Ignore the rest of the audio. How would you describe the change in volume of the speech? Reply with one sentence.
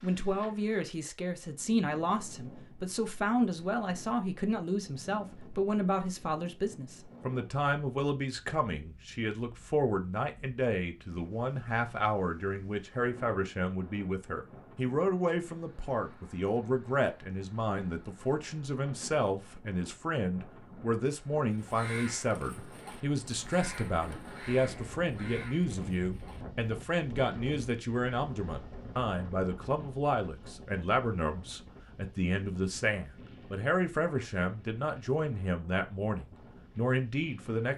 The loudness of the speech stays about the same.